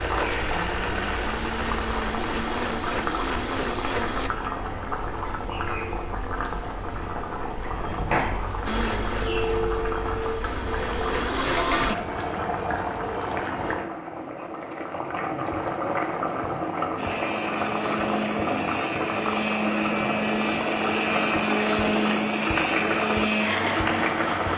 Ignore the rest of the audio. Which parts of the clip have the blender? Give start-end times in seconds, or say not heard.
0.0-4.3, 8.7-11.9, 16.9-24.5.